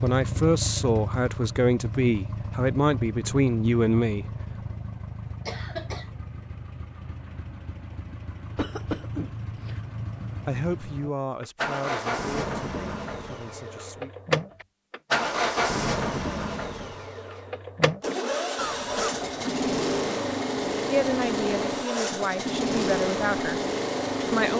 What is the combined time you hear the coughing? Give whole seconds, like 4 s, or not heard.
3 s.